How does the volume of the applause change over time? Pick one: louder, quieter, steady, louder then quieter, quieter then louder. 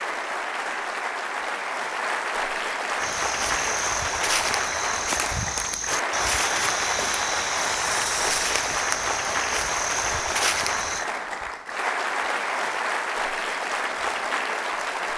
steady.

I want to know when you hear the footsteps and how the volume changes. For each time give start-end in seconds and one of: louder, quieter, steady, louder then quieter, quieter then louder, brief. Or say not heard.
3.0-11.1 steady.